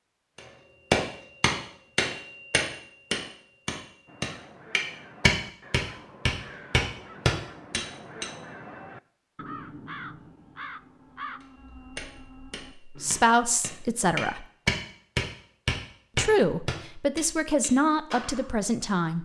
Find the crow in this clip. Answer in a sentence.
You can hear the crow from 4.0 to 13.2 s.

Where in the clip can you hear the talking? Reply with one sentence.
You can hear the talking from 12.8 to 14.4 s and from 16.1 to 19.1 s.